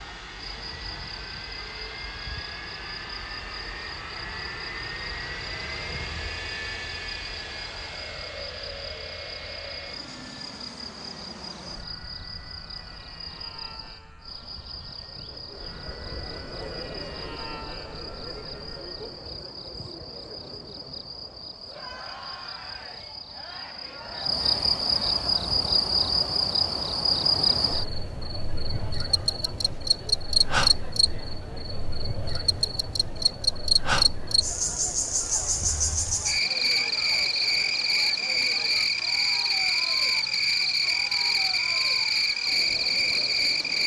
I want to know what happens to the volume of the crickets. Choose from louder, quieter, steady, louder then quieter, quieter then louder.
louder.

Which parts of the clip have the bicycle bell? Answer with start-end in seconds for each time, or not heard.
not heard.